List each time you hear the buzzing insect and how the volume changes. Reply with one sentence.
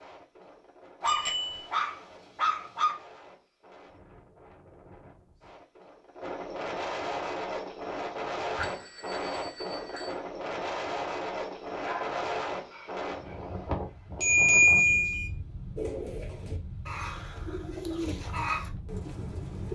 The buzzing insect can't be heard in this clip.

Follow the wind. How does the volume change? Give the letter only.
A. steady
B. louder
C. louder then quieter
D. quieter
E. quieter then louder
C.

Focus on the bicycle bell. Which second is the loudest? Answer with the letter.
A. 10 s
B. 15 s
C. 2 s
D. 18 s
B.